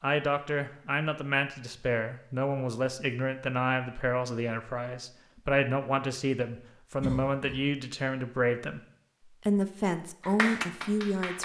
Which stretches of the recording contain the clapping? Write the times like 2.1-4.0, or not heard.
10.2-11.4.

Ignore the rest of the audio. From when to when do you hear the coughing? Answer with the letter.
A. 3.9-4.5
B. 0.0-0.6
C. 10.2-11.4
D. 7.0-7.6
D.